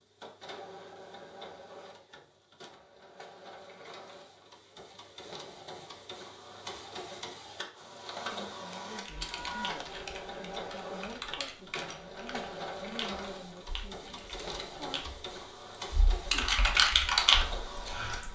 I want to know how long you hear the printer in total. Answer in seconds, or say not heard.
18 s.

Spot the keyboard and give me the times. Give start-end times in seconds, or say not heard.
9.1-18.3.